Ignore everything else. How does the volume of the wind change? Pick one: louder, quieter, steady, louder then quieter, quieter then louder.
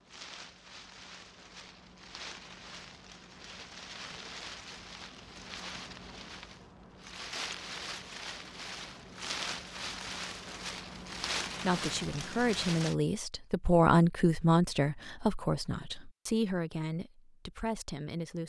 louder.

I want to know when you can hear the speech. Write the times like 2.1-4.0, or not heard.
11.6-18.4.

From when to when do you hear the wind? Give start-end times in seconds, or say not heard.
0.0-12.9.